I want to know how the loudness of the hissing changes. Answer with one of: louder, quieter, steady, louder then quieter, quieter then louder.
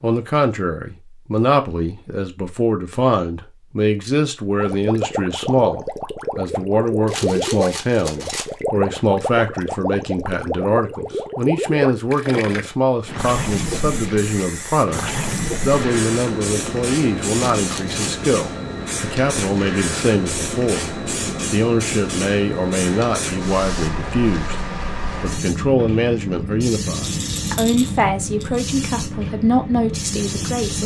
steady.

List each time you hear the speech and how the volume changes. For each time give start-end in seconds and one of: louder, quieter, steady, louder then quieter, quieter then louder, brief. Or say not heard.
0.0-30.8 steady.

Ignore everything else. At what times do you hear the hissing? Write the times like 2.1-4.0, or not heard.
13.2-30.8.